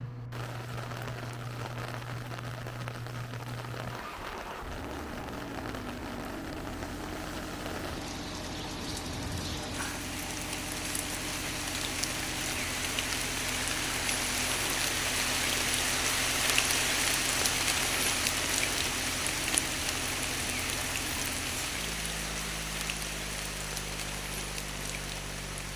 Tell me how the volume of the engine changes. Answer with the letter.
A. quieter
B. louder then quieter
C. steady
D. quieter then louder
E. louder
C.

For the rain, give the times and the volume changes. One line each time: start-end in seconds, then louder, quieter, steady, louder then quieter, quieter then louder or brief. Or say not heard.
0.0-25.7 louder then quieter.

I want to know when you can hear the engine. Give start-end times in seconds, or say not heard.
0.0-25.7.